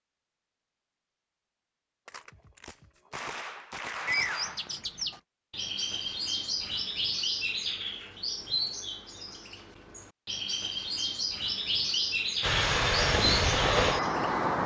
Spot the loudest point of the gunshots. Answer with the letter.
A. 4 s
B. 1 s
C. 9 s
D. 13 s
A.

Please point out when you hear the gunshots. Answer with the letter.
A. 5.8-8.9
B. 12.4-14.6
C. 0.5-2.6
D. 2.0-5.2
D.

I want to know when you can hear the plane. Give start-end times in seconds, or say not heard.
12.4-14.6.